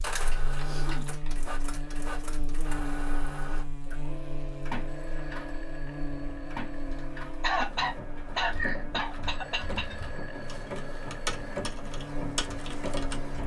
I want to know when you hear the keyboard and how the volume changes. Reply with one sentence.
The keyboard can be heard from 6.7 to 13.4 s, getting louder.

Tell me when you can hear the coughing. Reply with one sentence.
You can hear the coughing from 0.3 to 1.3 s and from 7.4 to 9.9 s.